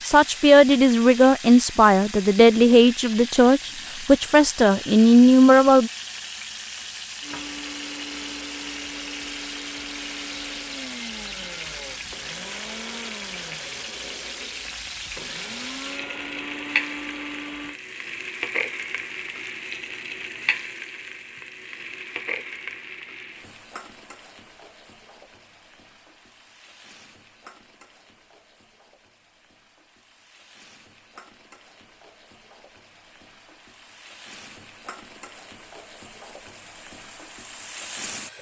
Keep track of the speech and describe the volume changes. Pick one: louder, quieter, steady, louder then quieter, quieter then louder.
steady.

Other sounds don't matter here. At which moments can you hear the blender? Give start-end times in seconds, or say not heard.
7.2-17.8.